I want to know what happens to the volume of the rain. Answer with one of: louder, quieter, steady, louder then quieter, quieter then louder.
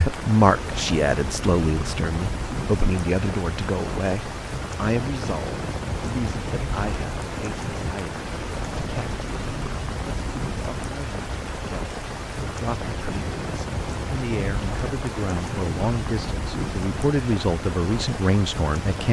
steady.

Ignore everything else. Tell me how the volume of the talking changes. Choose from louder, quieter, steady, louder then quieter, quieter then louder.
quieter then louder.